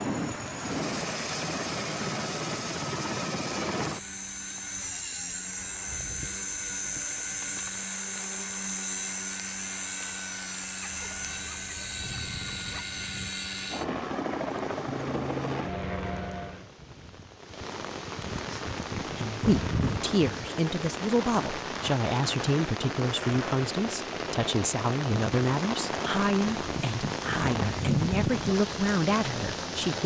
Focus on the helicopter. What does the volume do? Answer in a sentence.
The volume of the helicopter stays about the same.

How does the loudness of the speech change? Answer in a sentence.
The loudness of the speech stays about the same.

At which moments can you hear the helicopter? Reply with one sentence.
The helicopter can be heard from 0.0 to 16.7 s.